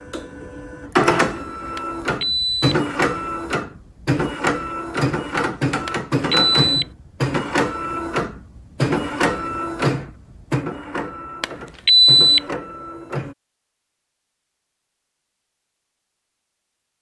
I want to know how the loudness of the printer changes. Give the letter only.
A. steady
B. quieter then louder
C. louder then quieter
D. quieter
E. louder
D.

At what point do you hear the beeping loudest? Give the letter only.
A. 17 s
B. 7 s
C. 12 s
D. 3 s
C.